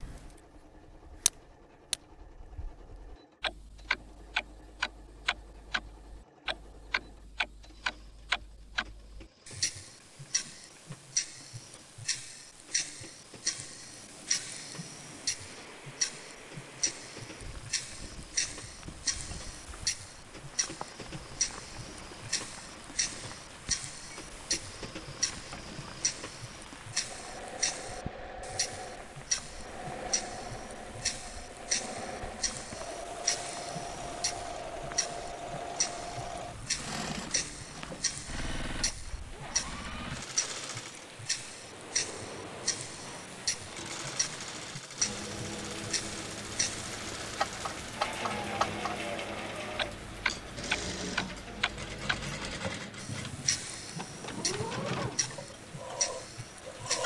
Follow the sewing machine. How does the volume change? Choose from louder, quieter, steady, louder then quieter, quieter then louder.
louder.